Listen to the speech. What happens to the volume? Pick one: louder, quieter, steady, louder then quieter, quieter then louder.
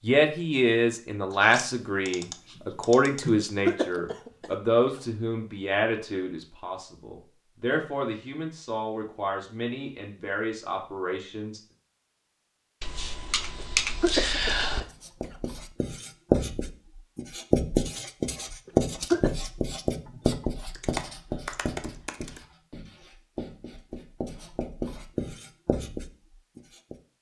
quieter.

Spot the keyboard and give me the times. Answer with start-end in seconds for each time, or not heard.
1.3-3.3, 12.8-14.8, 20.7-22.4.